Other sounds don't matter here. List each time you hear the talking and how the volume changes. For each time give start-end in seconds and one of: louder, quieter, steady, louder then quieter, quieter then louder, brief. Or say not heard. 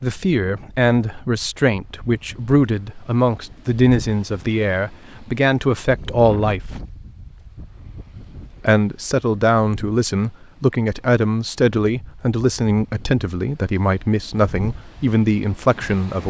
0.0-6.6 steady
8.6-16.2 steady.